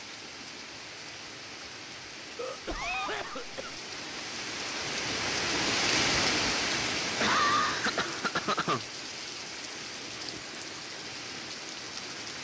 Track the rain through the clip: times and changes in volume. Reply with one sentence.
You can hear the rain from 0.0 to 12.4 s, getting louder then quieter.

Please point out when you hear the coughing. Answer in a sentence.
You can hear the coughing from 2.4 to 3.8 s and from 7.0 to 8.8 s.